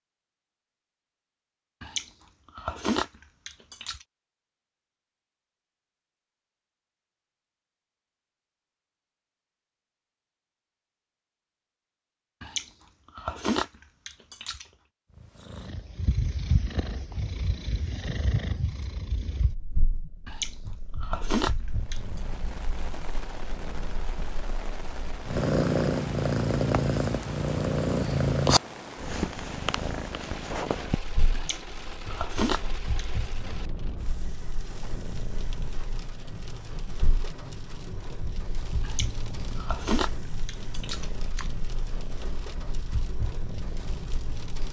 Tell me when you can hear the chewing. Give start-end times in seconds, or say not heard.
1.8-4.0, 12.4-14.7, 20.2-22.2, 31.3-33.0, 38.8-41.5.